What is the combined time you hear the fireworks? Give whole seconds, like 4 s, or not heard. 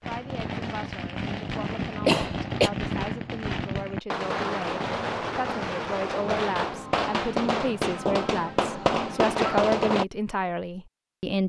10 s.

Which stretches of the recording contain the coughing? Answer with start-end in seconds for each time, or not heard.
2.0-2.7, 8.8-9.7.